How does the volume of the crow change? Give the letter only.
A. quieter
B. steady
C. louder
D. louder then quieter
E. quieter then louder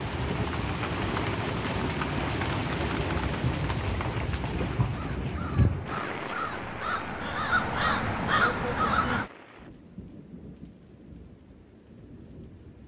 C.